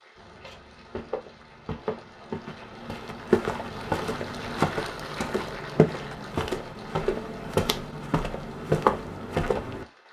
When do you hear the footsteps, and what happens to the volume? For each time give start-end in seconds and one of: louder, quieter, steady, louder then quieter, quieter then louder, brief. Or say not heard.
0.1-9.8 louder.